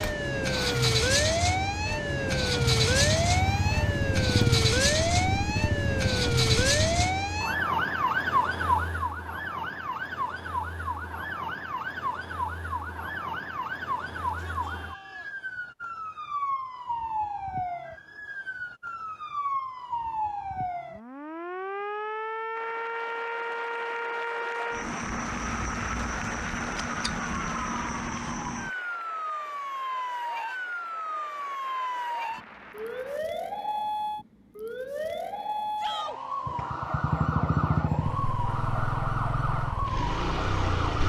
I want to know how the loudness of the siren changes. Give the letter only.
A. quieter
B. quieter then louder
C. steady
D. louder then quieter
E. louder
A.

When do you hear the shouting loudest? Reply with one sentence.
The volume of the shouting peaks at 36 seconds.